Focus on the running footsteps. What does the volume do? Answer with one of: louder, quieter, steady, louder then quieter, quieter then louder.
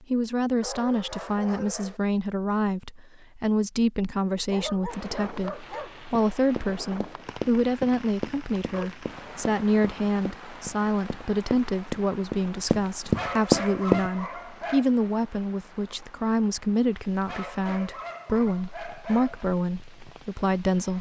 quieter then louder.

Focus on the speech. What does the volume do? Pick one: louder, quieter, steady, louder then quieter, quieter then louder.
steady.